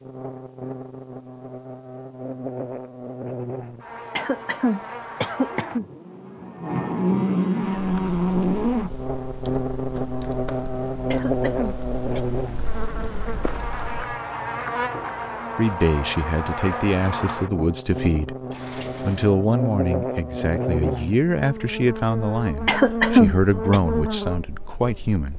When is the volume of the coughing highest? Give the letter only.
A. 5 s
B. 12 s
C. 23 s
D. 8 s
C.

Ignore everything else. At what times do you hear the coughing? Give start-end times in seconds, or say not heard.
4.2-5.8, 11.1-12.2, 22.6-23.8.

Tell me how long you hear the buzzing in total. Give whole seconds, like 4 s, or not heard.
25 s.